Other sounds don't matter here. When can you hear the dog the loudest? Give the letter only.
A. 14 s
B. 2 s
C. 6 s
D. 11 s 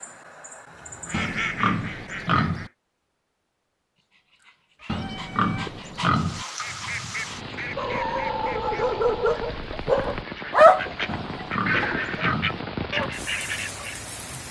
D.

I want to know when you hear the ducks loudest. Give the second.
12 s.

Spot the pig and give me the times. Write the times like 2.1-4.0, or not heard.
1.1-2.7, 4.8-6.5, 11.1-12.7.